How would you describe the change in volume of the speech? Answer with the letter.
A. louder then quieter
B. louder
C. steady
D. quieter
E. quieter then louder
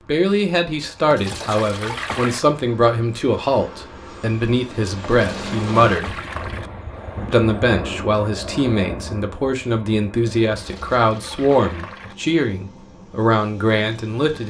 C.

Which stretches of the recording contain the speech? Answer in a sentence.
The speech can be heard from 0.1 to 6.2 s and from 7.2 to 14.4 s.